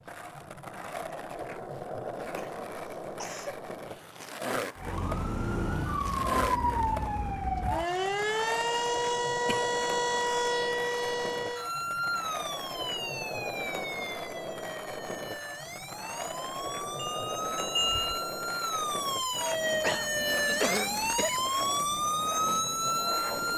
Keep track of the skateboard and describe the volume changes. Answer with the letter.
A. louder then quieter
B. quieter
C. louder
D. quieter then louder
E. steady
E.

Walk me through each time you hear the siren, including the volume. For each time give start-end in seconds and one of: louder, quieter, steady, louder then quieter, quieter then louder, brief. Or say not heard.
4.8-23.5 quieter then louder.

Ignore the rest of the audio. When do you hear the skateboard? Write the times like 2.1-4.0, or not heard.
0.0-23.5.